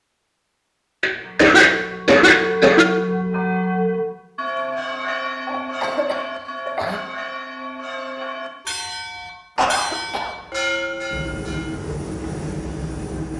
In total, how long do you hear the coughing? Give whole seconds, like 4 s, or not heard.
4 s.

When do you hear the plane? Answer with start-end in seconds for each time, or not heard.
11.1-13.3.